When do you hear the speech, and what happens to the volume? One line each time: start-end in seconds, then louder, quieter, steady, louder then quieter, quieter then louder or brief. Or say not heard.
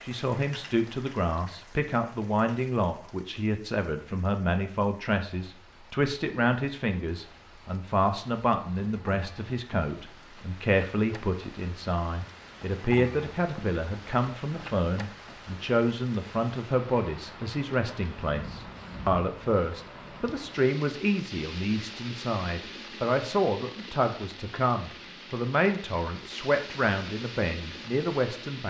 0.0-28.6 steady.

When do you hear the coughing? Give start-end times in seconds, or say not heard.
not heard.